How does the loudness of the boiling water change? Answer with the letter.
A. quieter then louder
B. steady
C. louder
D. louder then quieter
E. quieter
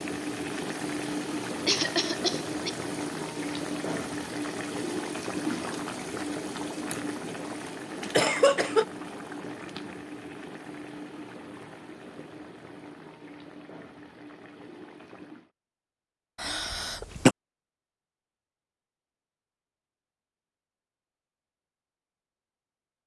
E.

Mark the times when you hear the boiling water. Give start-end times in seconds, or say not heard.
0.0-15.5.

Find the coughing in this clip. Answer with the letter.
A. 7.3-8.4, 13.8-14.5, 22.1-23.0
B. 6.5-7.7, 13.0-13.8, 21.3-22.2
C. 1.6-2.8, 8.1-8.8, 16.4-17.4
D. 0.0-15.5
C.